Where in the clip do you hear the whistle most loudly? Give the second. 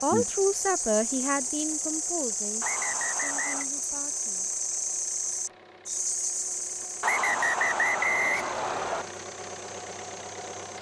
8 s.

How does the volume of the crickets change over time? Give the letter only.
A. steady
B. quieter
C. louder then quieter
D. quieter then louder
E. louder
B.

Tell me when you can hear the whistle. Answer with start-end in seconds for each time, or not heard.
2.6-3.6, 7.0-9.1.